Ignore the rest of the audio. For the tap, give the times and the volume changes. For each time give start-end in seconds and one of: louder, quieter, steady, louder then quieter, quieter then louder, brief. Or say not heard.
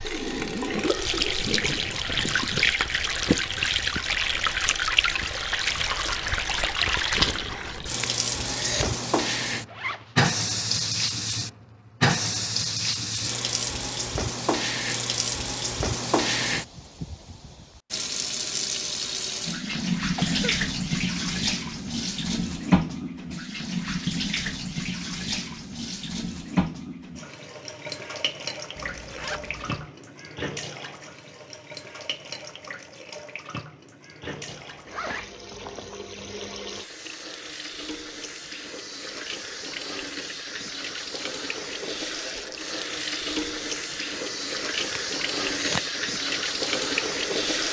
0.0-47.6 quieter then louder.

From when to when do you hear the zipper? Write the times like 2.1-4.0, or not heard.
9.7-10.2, 28.8-29.9, 34.2-36.0.